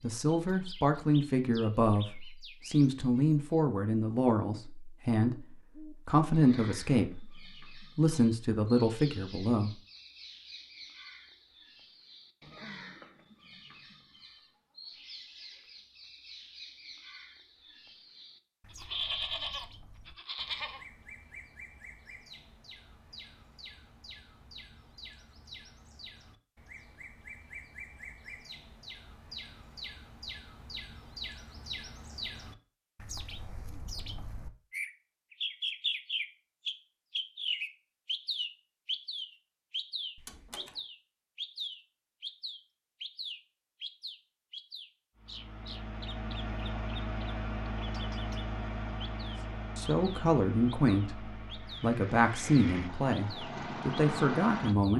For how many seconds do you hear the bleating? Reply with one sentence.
You can hear the bleating for 2 seconds altogether.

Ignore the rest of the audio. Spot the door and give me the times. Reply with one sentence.
You can hear the door from 40.1 to 40.8 s.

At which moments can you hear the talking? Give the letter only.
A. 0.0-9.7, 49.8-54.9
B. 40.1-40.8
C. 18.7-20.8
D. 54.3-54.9
A.